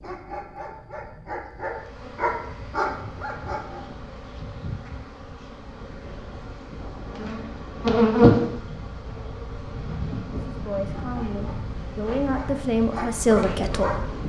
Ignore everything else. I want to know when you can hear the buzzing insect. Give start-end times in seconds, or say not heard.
1.8-14.2.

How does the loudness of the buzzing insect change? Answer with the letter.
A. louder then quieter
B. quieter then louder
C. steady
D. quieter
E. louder
A.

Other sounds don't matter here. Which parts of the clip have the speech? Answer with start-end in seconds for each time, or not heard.
10.4-13.9.